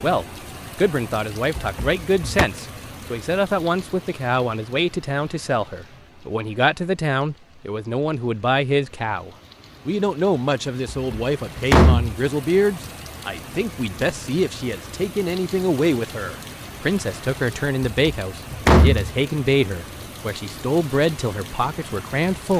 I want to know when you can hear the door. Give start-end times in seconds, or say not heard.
1.6-2.5, 10.8-12.2, 17.9-19.1.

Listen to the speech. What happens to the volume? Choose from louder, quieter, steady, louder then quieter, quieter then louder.
steady.